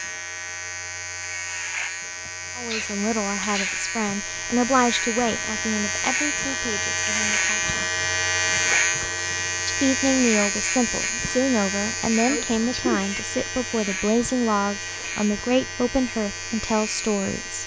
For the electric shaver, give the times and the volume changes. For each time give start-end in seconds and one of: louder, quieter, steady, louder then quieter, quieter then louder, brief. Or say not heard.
0.0-17.6 louder then quieter.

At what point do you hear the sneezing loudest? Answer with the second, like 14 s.
13 s.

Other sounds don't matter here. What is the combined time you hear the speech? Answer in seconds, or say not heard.
13 s.